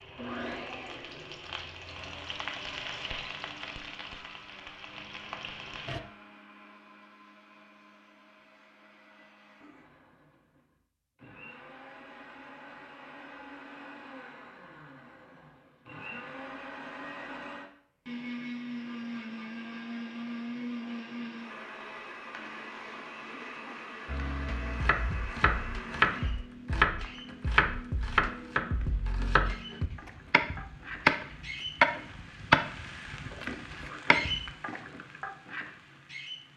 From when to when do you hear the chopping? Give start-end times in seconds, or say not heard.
24.1-34.5.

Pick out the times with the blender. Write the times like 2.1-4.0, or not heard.
0.0-26.4.